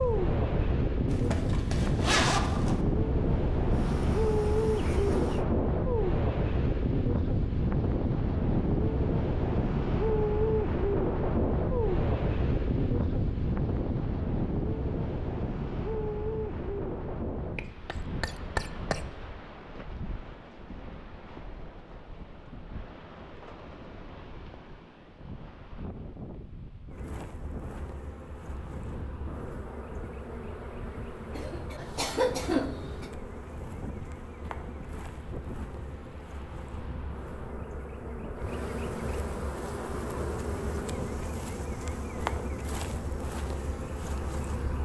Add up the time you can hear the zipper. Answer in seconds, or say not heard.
2 s.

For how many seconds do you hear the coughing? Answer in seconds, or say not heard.
3 s.